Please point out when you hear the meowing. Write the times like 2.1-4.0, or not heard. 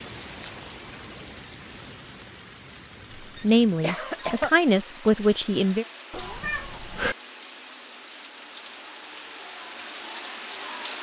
6.1-7.2.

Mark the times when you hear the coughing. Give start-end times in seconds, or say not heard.
3.1-4.5.